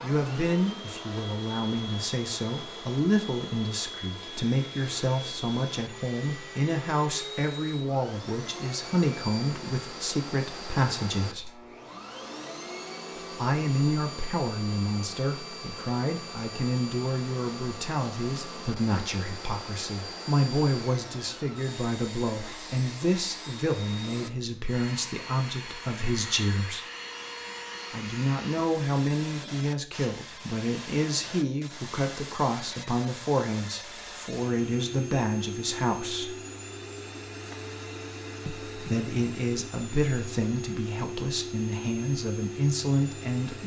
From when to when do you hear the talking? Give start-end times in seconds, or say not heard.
0.0-11.5, 13.3-26.9, 27.9-36.4, 38.5-43.6.